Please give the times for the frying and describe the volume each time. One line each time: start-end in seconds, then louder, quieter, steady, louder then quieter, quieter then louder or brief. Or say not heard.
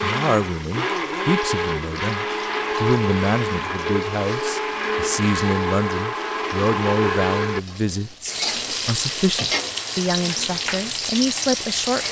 0.2-12.0 louder.